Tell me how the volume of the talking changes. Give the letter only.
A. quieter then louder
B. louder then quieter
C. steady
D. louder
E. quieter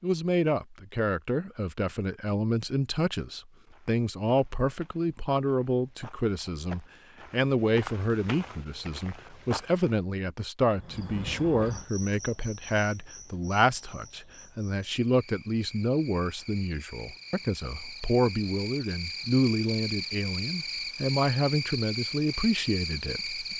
C.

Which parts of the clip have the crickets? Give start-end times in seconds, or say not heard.
10.7-23.5.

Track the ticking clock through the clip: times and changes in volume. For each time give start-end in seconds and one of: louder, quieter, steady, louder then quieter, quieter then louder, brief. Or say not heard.
not heard.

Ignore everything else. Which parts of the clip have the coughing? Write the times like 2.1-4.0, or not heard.
not heard.